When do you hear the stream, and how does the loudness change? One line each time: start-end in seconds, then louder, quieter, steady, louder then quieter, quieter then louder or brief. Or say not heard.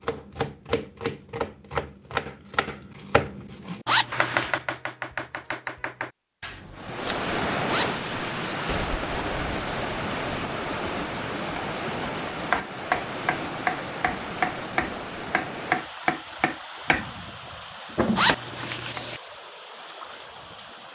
6.7-20.9 quieter.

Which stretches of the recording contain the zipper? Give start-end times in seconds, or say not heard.
3.9-4.5, 7.7-8.7, 18.1-19.2.